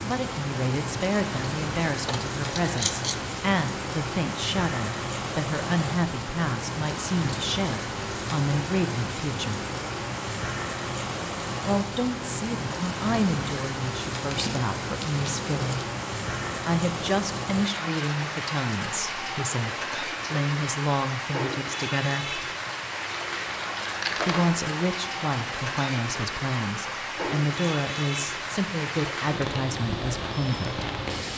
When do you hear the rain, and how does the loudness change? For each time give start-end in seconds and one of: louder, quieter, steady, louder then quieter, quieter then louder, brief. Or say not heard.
0.0-31.3 steady.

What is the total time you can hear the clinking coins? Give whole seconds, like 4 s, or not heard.
4 s.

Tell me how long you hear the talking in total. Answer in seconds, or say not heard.
26 s.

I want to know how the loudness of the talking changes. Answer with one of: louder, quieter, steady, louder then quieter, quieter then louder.
steady.